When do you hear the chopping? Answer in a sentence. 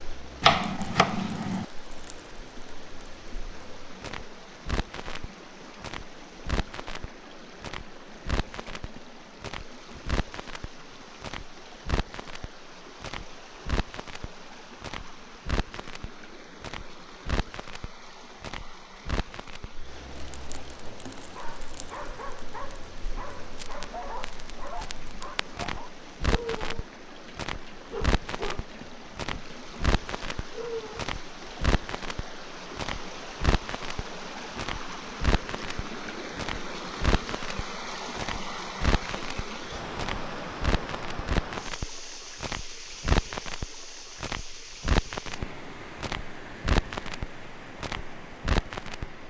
You can hear the chopping from 0.4 to 1.6 s.